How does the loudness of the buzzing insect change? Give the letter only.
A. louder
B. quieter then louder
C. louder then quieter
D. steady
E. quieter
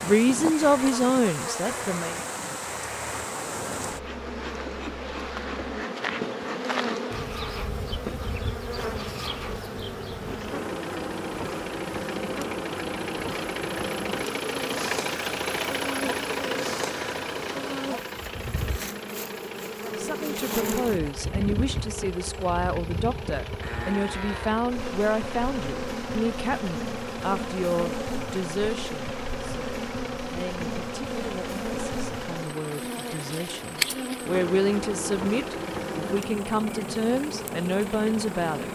D.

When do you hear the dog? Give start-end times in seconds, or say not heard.
not heard.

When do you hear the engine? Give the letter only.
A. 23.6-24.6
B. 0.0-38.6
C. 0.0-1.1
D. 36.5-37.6
B.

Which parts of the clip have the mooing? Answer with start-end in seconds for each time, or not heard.
23.6-24.6.